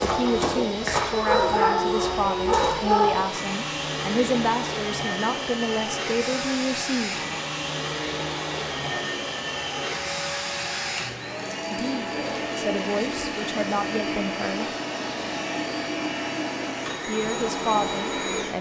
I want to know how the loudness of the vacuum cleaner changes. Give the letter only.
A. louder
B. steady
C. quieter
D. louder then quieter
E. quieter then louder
B.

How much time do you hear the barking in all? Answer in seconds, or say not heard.
3 s.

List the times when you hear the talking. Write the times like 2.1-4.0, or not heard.
0.0-7.2, 11.7-14.7, 17.1-18.5.